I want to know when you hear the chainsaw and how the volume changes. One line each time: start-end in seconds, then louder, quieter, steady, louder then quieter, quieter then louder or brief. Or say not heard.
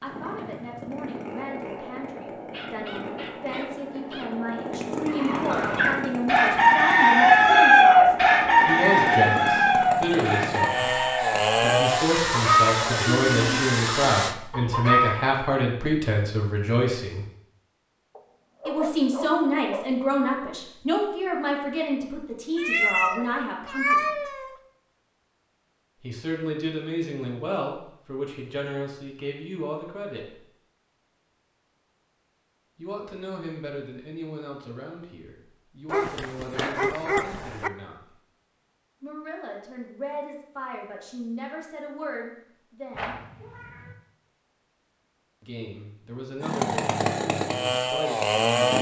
0.0-14.3 louder
46.4-48.7 brief.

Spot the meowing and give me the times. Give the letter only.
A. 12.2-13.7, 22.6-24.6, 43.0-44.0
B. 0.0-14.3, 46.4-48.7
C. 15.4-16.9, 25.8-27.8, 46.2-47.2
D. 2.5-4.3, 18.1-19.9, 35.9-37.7
A.